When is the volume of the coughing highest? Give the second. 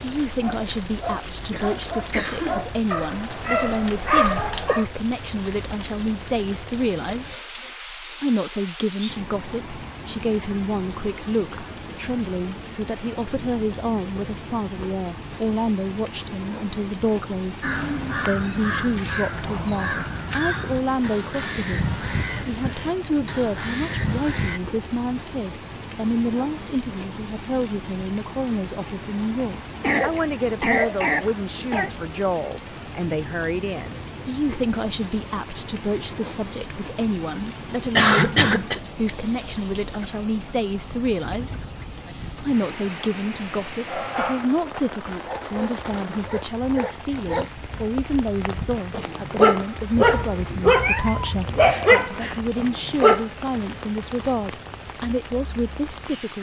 38 s.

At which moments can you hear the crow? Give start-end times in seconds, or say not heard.
17.6-24.6.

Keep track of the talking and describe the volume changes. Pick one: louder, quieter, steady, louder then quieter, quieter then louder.
steady.